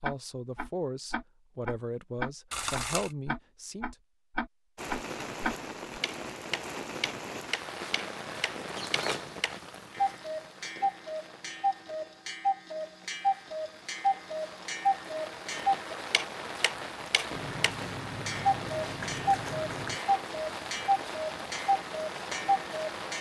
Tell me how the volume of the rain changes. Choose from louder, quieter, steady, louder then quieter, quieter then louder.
quieter then louder.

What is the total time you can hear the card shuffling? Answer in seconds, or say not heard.
4 s.